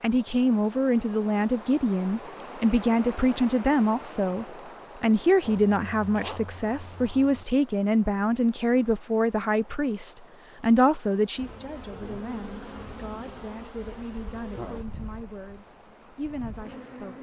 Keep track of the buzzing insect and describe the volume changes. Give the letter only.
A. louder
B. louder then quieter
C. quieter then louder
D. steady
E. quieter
E.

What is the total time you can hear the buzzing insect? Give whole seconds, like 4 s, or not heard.
6 s.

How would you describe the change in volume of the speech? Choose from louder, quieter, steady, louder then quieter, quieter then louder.
quieter.